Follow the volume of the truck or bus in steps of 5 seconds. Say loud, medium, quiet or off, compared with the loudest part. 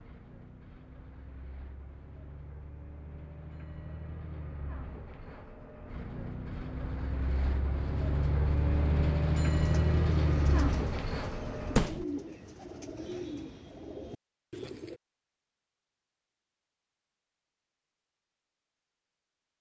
quiet, loud, loud, off.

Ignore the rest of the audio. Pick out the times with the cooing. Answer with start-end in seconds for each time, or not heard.
9.6-15.0.